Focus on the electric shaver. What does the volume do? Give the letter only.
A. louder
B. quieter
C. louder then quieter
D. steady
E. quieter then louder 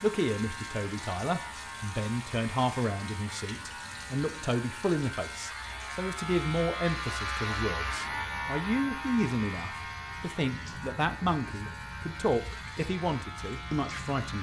C.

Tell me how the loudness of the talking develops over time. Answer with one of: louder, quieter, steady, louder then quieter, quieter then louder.
steady.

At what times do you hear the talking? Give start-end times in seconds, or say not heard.
0.0-14.3.